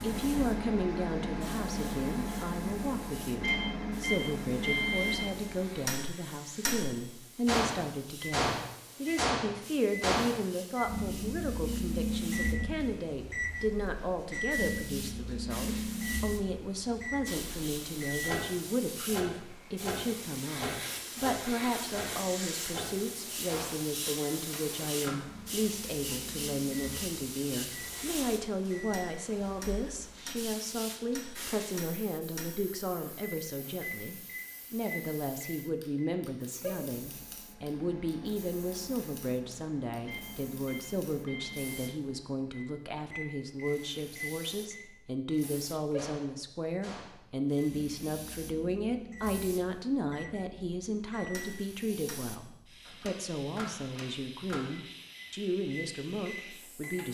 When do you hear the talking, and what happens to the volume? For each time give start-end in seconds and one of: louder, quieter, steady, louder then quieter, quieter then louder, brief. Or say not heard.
0.0-57.0 steady.